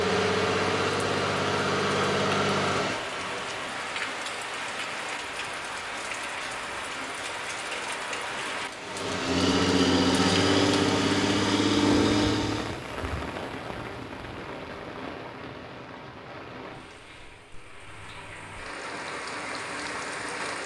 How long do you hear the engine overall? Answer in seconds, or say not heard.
8 s.